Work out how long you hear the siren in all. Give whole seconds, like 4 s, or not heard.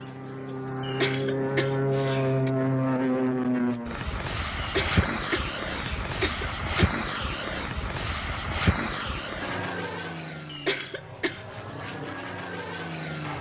not heard.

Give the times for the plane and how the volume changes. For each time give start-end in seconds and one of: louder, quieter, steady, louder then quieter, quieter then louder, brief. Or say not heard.
0.0-13.3 quieter.